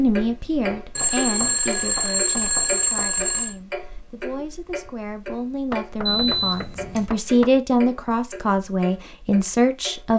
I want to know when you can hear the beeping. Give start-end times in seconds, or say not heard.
0.9-3.5, 6.0-7.1.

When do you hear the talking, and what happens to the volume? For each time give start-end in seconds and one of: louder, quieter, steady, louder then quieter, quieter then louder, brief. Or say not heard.
0.0-10.1 quieter then louder.